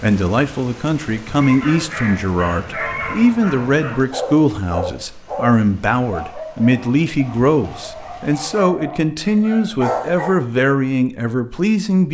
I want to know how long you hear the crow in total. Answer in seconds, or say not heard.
not heard.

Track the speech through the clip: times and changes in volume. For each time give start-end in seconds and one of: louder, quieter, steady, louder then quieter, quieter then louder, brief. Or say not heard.
0.0-12.0 steady.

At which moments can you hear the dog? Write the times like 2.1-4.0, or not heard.
1.3-10.3.